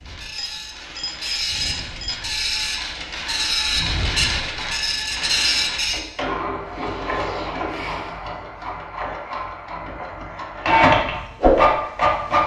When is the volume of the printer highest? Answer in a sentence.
The loudest moment of the printer is at 11 seconds.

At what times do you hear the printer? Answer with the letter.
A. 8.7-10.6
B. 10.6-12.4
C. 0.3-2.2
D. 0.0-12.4
D.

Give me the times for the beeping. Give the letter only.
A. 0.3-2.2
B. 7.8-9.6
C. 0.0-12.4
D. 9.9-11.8
A.